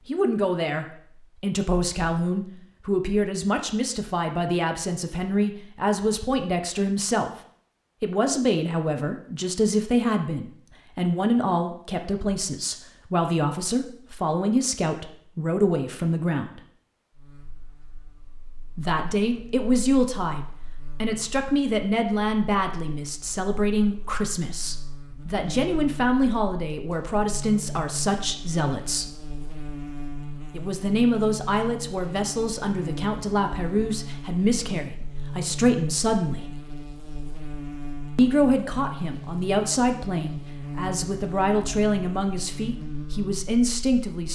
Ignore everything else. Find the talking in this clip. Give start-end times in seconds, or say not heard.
0.1-7.3, 8.0-16.6, 18.8-29.1, 30.5-36.5, 38.1-44.2.